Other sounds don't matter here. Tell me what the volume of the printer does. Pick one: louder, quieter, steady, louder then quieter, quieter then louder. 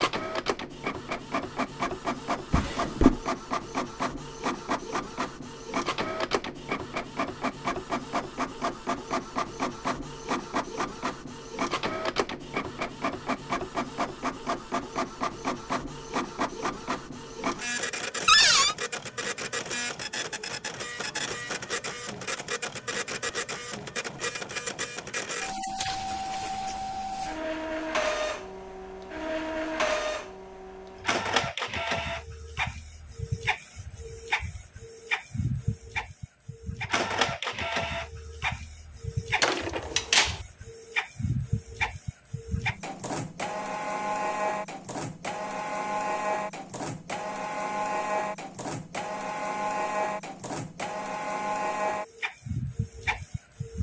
steady.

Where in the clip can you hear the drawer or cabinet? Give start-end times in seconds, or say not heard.
2.5-3.2, 18.2-18.8, 39.4-40.4.